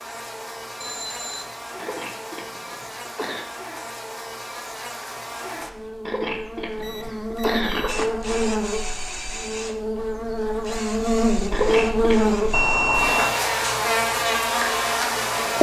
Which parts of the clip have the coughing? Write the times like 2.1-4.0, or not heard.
1.8-3.5, 6.0-8.1, 11.5-12.6.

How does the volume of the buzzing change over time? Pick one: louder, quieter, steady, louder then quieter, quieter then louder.
louder.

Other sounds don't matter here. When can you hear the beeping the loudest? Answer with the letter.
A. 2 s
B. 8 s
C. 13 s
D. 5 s
C.